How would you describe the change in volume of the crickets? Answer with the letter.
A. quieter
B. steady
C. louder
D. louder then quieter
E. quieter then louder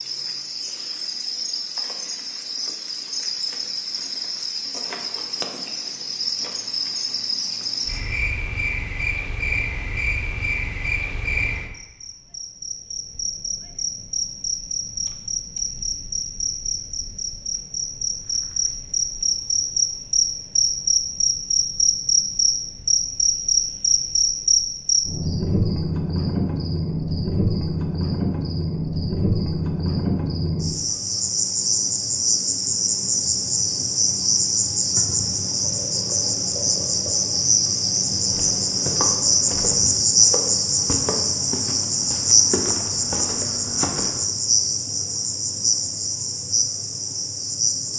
C.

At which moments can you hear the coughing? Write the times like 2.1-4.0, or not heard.
not heard.